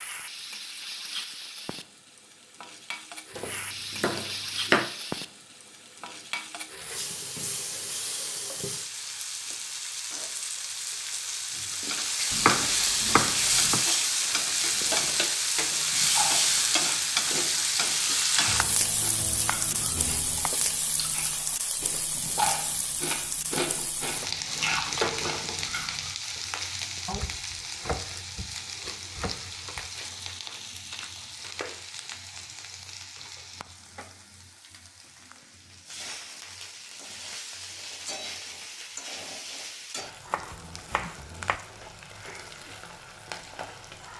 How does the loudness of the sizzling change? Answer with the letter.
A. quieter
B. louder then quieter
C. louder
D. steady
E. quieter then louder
B.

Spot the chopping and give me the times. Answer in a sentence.
The chopping can be heard from 3.4 to 4.9 s, from 12.3 to 13.8 s, from 18.4 to 20.5 s, from 27.1 to 29.9 s and from 40.3 to 41.5 s.